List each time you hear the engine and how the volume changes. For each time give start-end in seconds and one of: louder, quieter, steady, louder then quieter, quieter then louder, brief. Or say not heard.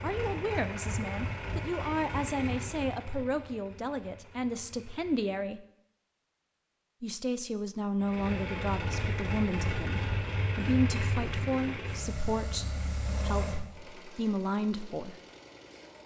0.0-5.5 quieter
8.0-16.0 quieter.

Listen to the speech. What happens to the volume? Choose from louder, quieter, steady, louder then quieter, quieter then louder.
steady.